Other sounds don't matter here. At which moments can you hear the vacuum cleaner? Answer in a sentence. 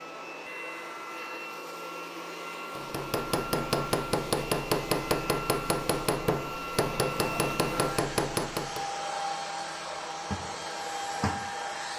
The vacuum cleaner can be heard from 0.0 to 11.9 s.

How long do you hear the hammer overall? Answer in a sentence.
The hammer can be heard for 6 seconds in total.